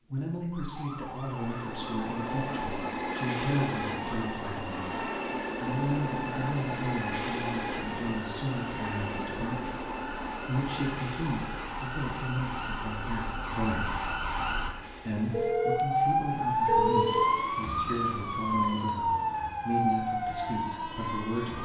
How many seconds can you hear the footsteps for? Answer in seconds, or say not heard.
not heard.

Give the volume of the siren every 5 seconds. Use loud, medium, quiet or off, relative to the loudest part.
quiet, quiet, medium, loud, medium.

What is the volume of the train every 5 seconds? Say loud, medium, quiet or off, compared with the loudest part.
loud, loud, medium, quiet, medium.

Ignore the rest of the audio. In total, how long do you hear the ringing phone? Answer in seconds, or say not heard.
2 s.